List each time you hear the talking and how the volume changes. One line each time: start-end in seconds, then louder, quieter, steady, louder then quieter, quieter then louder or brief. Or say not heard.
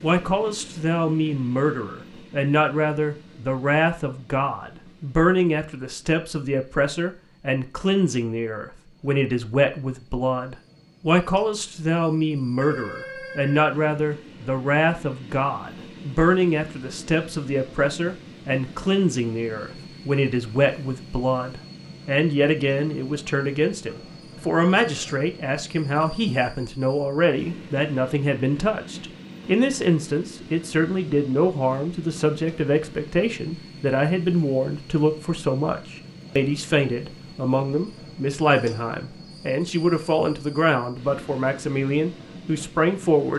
0.0-43.3 steady.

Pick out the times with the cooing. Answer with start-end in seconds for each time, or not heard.
not heard.